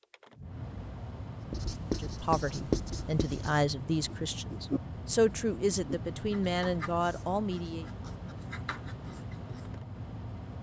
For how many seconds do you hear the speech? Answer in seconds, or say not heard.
6 s.